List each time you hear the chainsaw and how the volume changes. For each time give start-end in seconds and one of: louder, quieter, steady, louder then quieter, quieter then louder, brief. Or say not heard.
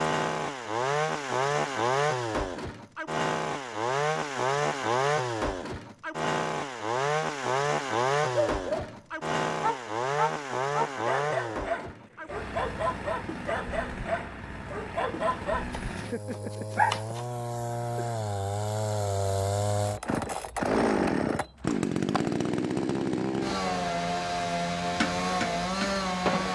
0.0-26.5 quieter then louder.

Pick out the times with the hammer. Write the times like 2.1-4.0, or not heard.
24.9-26.5.